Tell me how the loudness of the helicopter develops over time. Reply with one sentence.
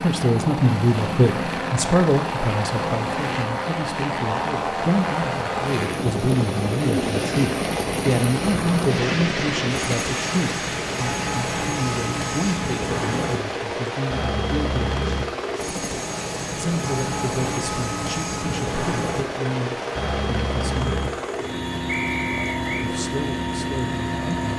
The loudness of the helicopter stays about the same.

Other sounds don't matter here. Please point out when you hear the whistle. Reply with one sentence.
The whistle can be heard from 21.9 to 22.9 s.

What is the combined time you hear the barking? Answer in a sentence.
You can't hear the barking here.